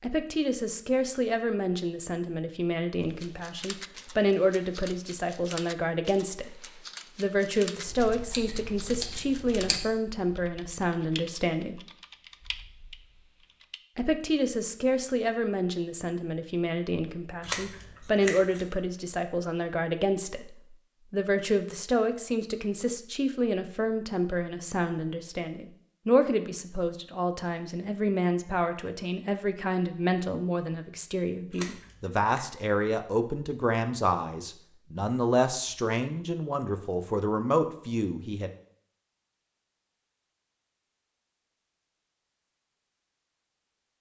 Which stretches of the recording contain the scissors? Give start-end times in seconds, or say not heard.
7.8-9.8, 17.4-18.6, 31.5-32.5.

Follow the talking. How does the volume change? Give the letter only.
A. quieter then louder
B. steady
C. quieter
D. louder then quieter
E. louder
B.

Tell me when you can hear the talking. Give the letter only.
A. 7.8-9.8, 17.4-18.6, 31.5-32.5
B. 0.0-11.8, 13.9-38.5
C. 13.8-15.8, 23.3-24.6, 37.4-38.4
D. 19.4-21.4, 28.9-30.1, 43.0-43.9
B.